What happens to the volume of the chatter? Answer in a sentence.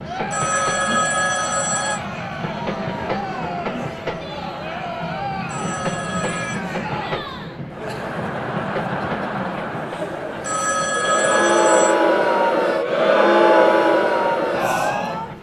The loudness of the chatter goes up.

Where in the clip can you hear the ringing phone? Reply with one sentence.
The ringing phone can be heard from 0.3 to 2.0 s, from 5.5 to 6.6 s and from 10.4 to 11.9 s.